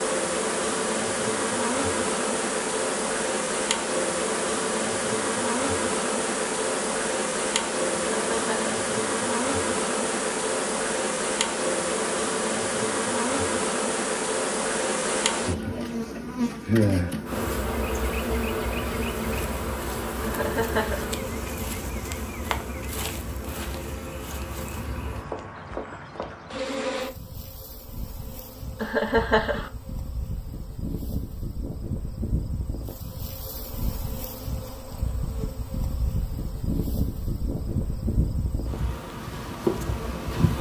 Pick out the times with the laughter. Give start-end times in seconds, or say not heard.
8.0-8.6, 20.2-21.1, 28.8-29.7.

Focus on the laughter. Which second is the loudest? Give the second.
29 s.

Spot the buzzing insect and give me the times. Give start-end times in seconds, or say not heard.
0.0-40.5.